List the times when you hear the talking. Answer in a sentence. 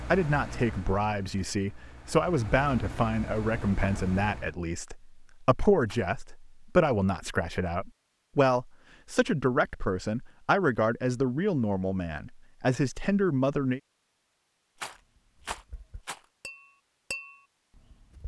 You can hear the talking from 0.1 to 13.8 s.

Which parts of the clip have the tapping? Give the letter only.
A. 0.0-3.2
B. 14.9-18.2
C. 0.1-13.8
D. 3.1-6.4
B.